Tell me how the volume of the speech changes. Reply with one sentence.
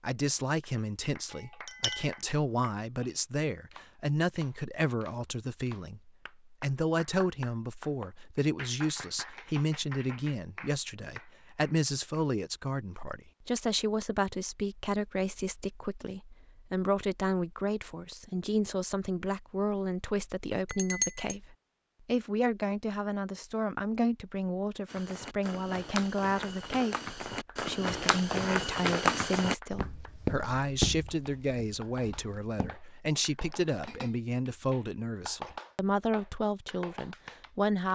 The loudness of the speech stays about the same.